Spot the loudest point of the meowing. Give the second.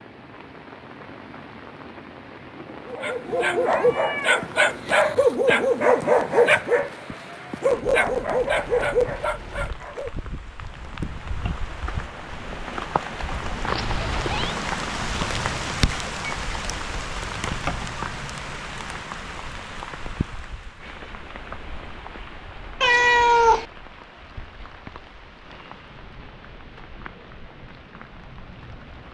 23 s.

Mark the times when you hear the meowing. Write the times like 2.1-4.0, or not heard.
3.2-5.0, 13.7-14.6, 22.8-23.6.